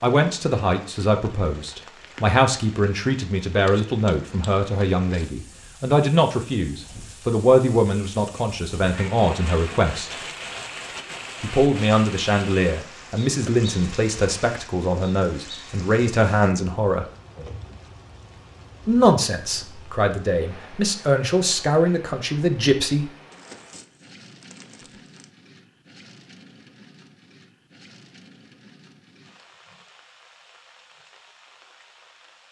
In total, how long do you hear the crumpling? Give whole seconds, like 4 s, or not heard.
2 s.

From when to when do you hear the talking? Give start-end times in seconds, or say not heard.
0.0-10.2, 11.4-17.1, 18.9-23.1.